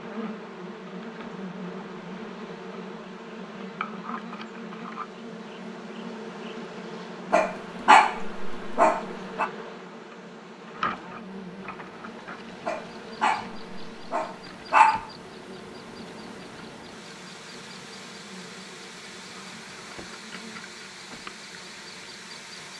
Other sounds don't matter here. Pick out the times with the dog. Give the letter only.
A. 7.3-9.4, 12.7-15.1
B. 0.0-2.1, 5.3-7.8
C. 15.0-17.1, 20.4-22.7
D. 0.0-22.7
A.